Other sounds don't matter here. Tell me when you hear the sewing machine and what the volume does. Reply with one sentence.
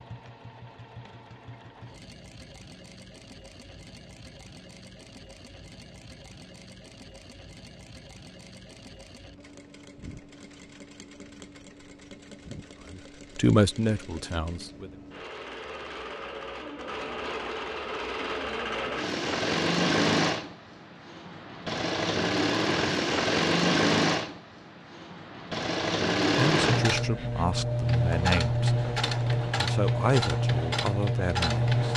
You can hear the sewing machine from 0.0 to 31.9 s, getting louder.